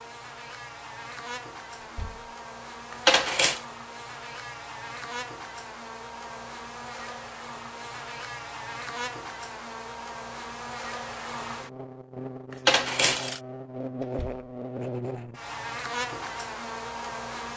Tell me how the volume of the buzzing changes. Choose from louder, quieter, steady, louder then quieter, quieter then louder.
louder.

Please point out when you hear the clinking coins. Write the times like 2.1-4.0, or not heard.
2.9-3.6, 12.5-13.4.